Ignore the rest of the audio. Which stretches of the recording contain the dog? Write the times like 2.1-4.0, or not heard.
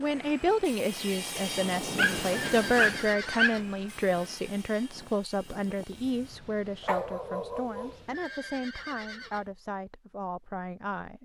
1.9-3.6, 6.8-8.0.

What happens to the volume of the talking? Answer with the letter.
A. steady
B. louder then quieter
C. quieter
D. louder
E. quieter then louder
C.